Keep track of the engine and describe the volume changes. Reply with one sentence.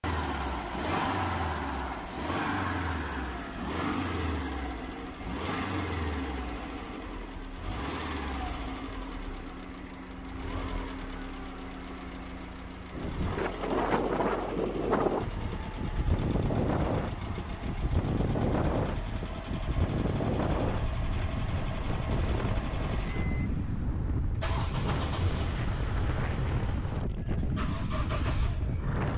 The loudness of the engine goes down.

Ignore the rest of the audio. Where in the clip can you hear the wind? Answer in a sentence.
The wind can be heard from 12.9 to 29.1 s.